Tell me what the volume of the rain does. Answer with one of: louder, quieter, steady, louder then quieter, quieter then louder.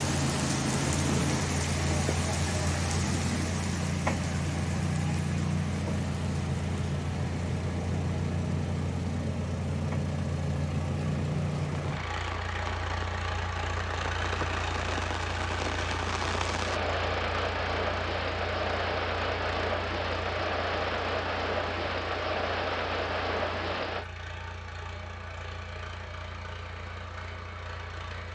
quieter then louder.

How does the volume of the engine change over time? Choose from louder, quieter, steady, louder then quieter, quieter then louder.
quieter.